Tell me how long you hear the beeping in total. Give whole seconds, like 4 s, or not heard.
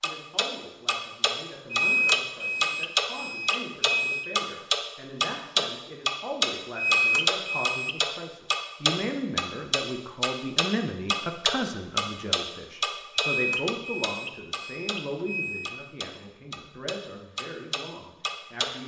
6 s.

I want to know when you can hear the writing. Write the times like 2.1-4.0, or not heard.
not heard.